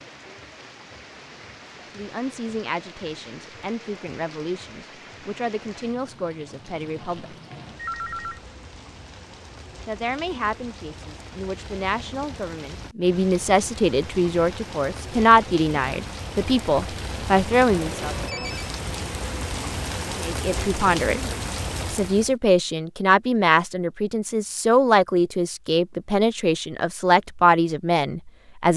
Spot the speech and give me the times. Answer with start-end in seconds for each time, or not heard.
1.9-7.3, 9.8-18.1, 20.1-21.2, 21.9-28.7.